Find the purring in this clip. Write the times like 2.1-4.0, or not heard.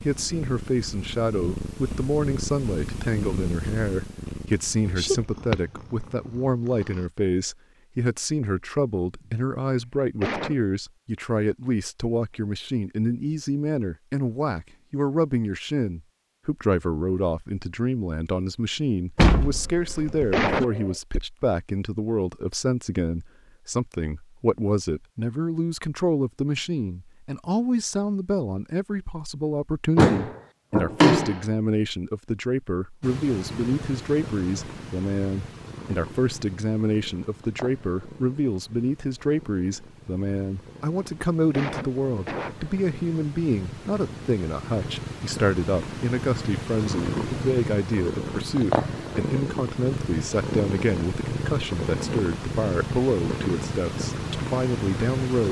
0.0-7.1, 33.0-55.4.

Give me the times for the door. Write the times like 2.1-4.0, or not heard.
19.1-20.6, 29.9-31.4.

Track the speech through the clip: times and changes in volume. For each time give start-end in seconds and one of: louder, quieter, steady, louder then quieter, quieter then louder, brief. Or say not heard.
0.0-55.4 steady.